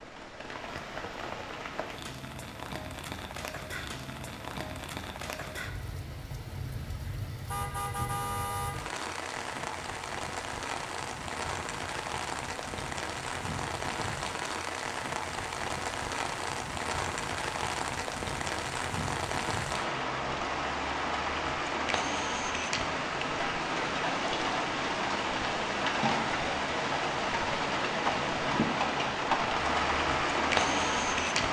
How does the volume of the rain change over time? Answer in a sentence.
The loudness of the rain goes up.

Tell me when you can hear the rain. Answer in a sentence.
The rain can be heard from 0.0 to 31.4 s.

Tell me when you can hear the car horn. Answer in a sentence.
You can hear the car horn from 7.5 to 8.9 s.